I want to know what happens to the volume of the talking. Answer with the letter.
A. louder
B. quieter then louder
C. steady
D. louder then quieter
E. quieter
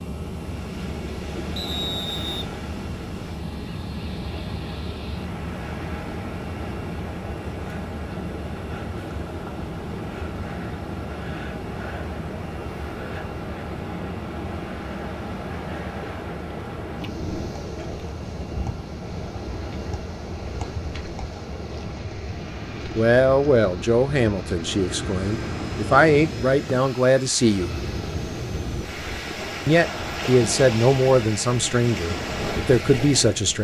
C.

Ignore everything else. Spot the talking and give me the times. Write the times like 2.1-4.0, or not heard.
22.9-27.7, 29.6-33.5.